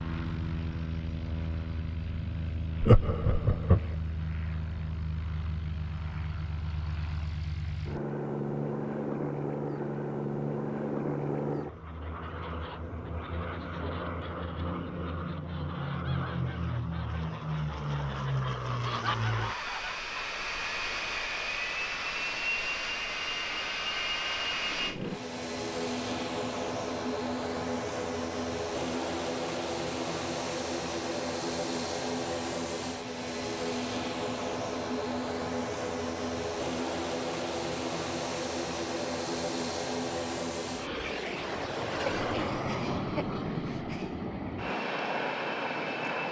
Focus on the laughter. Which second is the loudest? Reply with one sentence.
The volume of the laughter peaks at 3 seconds.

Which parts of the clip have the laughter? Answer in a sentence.
The laughter can be heard from 2.8 to 3.8 s and from 42.1 to 44.1 s.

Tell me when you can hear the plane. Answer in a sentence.
The plane can be heard from 0.0 to 46.2 s.